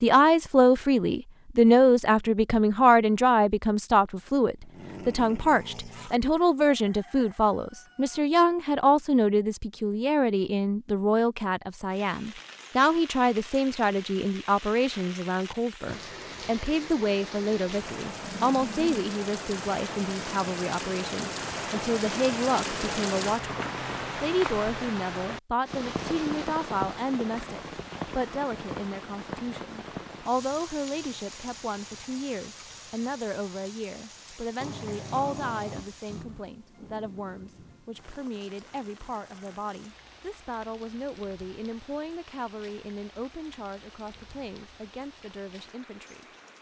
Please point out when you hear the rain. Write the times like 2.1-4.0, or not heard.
11.9-46.5.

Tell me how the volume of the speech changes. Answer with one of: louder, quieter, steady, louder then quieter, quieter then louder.
quieter.